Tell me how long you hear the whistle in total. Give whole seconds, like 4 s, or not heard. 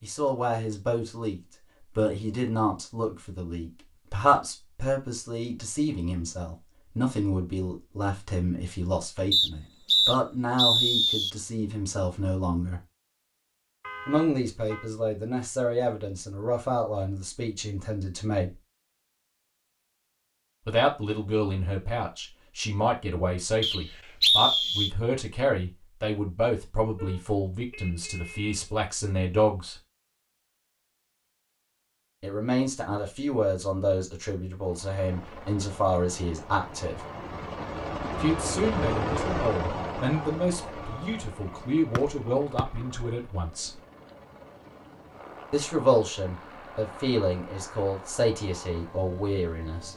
4 s.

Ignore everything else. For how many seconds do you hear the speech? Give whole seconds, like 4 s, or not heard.
41 s.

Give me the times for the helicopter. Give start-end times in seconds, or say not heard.
34.5-49.9.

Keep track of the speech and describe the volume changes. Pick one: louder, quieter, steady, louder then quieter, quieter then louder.
steady.